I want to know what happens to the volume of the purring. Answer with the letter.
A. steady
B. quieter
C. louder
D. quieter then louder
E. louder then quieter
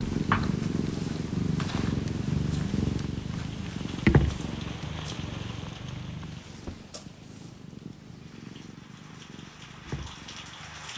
B.